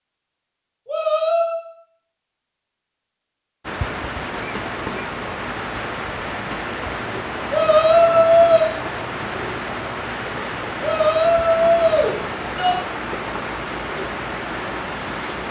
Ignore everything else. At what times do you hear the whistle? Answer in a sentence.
You can't hear the whistle here.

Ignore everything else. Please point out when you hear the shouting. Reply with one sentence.
The shouting can be heard from 0.8 to 1.6 s, from 7.5 to 8.7 s and from 10.8 to 12.8 s.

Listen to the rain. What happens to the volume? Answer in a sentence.
The loudness of the rain stays about the same.